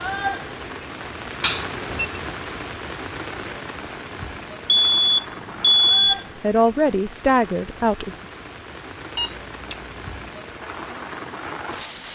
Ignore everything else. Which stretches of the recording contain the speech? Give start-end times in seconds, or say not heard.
6.4-8.2.